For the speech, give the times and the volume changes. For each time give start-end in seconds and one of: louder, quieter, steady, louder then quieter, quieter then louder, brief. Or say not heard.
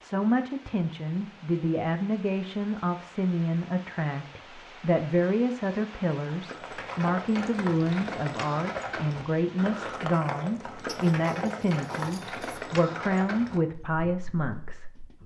0.0-14.8 steady.